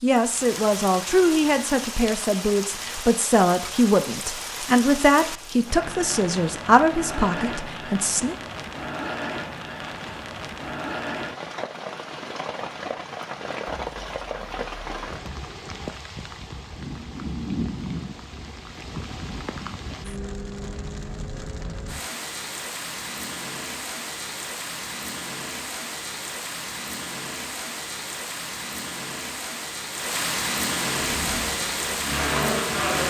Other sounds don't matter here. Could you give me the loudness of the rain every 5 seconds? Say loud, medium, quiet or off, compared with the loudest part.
medium, medium, medium, medium, medium, medium, loud.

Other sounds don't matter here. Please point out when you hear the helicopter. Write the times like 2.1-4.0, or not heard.
31.0-33.0.